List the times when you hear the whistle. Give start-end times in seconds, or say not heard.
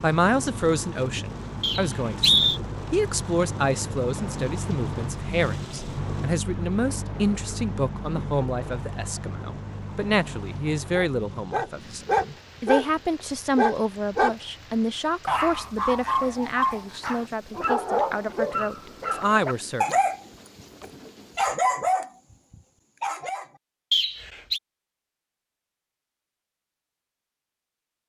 1.6-2.6, 23.9-24.6.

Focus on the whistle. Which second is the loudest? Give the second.
2 s.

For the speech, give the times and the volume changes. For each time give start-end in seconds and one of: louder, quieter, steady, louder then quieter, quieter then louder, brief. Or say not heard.
0.0-20.0 steady.